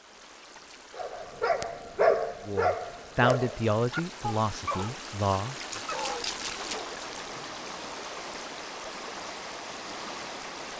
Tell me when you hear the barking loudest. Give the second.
2 s.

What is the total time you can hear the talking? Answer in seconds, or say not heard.
3 s.